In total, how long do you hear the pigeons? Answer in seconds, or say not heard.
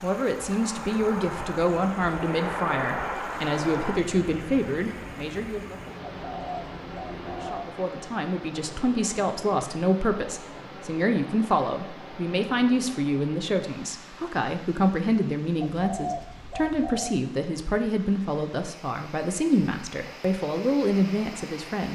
3 s.